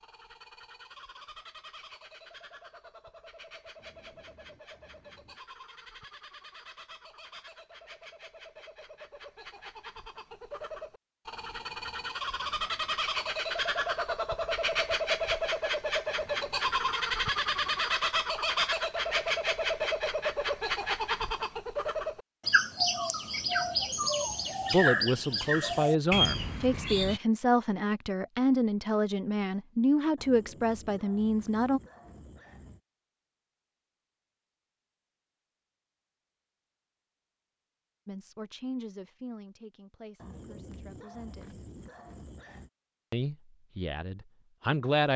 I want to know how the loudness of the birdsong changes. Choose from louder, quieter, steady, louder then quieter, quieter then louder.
louder.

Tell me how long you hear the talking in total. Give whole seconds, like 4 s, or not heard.
13 s.